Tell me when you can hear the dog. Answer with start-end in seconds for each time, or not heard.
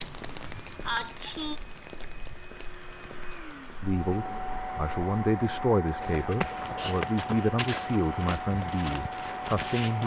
not heard.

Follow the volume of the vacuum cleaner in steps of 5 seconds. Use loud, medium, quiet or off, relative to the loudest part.
medium, loud.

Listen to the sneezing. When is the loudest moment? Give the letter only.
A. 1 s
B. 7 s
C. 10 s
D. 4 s
A.